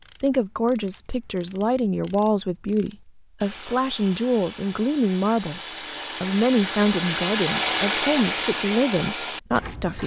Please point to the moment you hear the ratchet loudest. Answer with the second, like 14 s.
8 s.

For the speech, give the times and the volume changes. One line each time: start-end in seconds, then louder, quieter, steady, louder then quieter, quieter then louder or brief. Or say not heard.
0.2-10.0 steady.